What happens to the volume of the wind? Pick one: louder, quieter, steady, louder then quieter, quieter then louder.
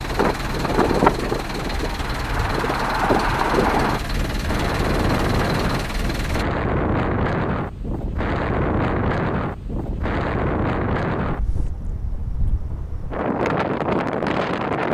steady.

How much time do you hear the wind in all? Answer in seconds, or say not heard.
15 s.